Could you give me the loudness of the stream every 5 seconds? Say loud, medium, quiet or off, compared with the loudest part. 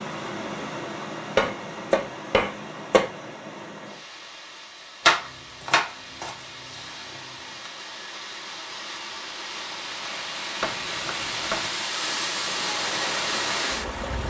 medium, medium, loud.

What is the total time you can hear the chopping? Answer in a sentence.
You can hear the chopping for 5 seconds altogether.